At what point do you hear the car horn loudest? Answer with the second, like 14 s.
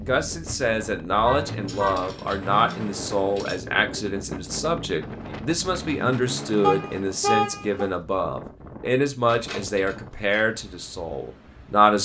7 s.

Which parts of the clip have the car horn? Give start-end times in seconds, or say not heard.
1.2-2.1, 6.6-7.9.